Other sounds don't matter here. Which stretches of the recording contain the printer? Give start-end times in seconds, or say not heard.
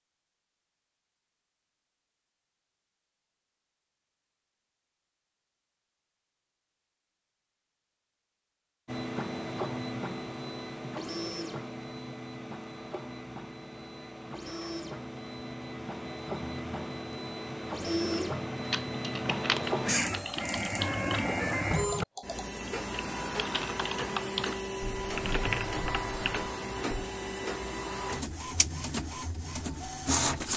8.8-30.5.